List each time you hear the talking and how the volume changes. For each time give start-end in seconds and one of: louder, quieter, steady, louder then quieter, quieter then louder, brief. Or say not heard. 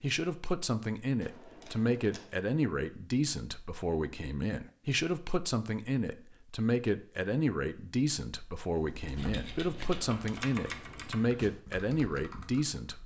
0.0-13.0 steady.